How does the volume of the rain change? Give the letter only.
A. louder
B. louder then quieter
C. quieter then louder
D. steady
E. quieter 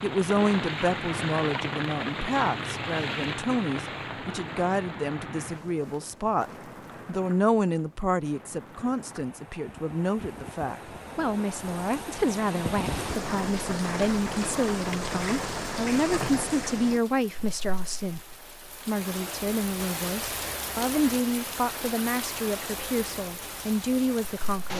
C.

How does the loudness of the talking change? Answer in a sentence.
The loudness of the talking stays about the same.